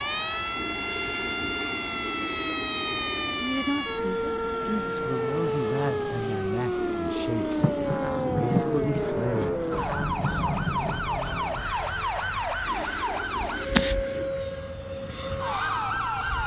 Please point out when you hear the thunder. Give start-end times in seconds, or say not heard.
7.5-11.1.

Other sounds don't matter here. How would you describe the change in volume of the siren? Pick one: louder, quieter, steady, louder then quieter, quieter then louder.
steady.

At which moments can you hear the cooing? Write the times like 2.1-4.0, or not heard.
0.6-3.5, 6.8-9.4, 12.7-14.3.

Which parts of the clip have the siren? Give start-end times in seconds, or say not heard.
0.0-16.4.